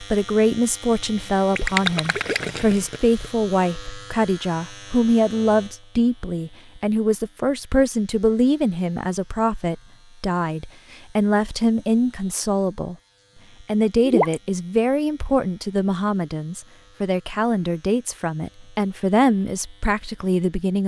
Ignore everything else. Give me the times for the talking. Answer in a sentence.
You can hear the talking from 0.0 to 12.9 s and from 13.6 to 20.8 s.